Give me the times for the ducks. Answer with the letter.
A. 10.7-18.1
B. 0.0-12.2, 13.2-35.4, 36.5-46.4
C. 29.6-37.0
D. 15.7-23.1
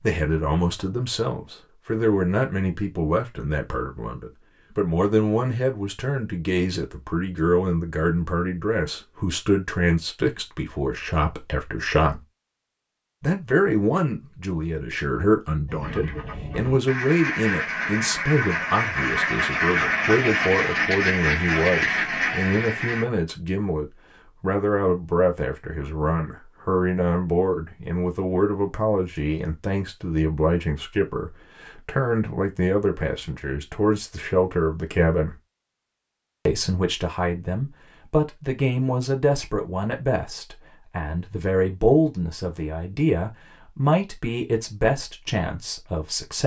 D.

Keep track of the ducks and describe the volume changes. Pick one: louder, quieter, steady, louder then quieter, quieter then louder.
louder.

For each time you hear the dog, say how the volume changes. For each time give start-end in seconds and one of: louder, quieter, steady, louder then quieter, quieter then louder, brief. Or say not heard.
not heard.